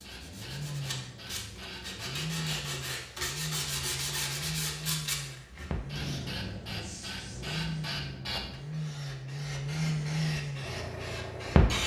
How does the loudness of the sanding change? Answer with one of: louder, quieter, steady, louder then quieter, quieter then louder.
louder then quieter.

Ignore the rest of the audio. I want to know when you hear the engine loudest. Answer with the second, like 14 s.
10 s.